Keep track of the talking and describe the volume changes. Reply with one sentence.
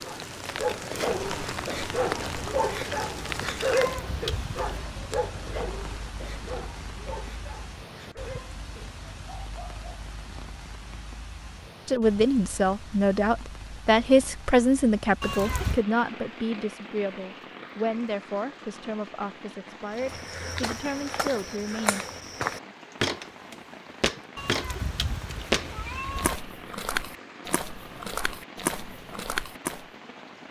The loudness of the talking goes down.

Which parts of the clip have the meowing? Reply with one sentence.
You can hear the meowing from 3.8 to 4.8 s, from 15.2 to 15.8 s and from 24.4 to 26.4 s.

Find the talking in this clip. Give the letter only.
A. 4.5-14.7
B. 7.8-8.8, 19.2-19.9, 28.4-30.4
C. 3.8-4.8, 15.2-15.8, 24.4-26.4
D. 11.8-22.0
D.